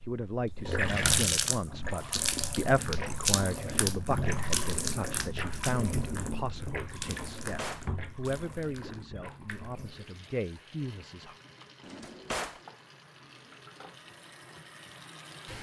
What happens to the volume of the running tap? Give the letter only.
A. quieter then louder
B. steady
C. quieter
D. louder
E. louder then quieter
C.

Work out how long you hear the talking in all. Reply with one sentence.
The talking can be heard for 11 seconds in total.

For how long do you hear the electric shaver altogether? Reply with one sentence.
You can't hear the electric shaver here.